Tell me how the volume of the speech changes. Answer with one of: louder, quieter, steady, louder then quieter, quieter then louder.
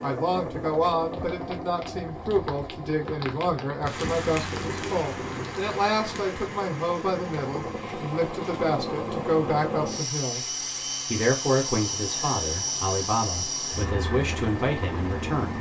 steady.